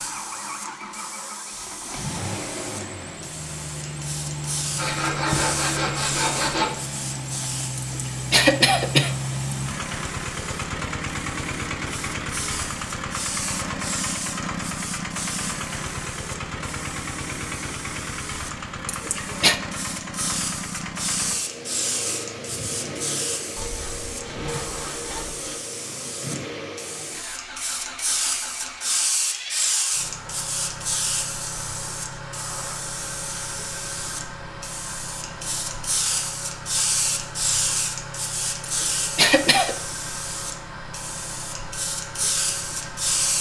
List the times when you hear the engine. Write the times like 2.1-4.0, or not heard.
0.0-43.3.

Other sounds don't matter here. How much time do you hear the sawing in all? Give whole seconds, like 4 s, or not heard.
4 s.